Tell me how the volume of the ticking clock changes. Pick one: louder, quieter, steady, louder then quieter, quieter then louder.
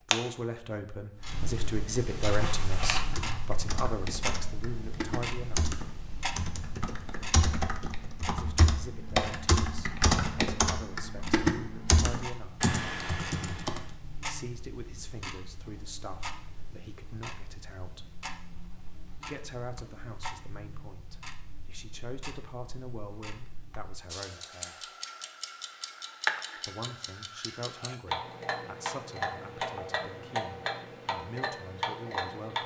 quieter then louder.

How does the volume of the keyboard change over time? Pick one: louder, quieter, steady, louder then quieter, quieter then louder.
louder.